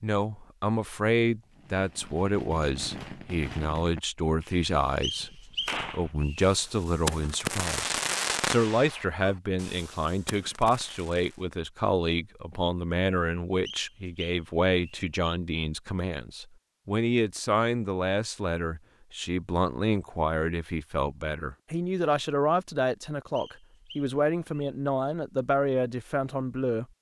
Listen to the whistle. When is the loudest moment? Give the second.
5 s.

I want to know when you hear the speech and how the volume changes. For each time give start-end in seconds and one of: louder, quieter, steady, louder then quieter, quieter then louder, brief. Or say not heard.
0.0-26.9 steady.